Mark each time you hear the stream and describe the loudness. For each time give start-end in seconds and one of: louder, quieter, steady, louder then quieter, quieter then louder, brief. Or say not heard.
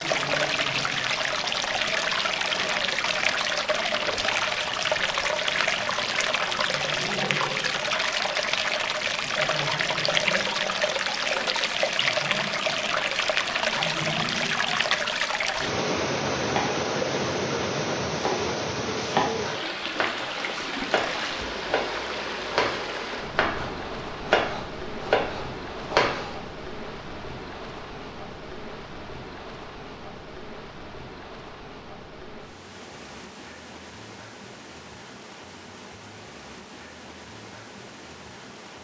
0.0-38.7 quieter.